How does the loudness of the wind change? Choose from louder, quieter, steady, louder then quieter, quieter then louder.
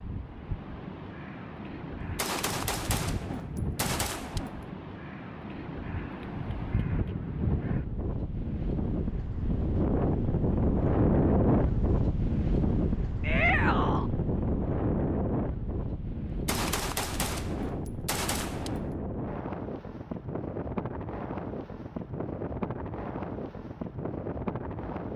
louder then quieter.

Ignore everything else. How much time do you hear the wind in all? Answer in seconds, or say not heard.
25 s.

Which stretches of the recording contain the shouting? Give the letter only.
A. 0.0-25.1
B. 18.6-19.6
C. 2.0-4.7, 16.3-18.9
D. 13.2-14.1
D.